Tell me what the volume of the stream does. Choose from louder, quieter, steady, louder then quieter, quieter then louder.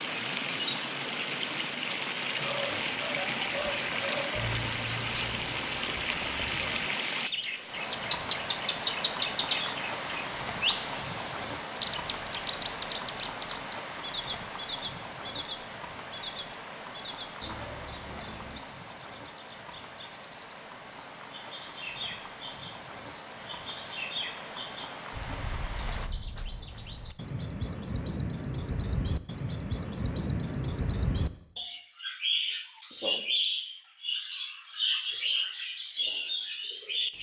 quieter.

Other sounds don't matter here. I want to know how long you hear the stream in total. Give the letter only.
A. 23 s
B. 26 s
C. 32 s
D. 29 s
B.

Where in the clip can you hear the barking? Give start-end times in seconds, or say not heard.
2.4-4.3.